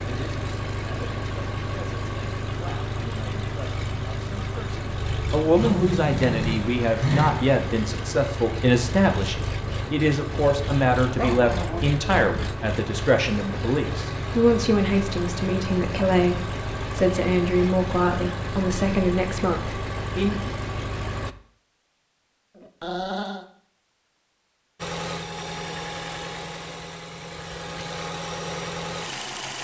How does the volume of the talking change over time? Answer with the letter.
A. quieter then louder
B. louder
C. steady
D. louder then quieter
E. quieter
B.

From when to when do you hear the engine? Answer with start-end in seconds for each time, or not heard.
0.0-21.4, 24.8-29.5.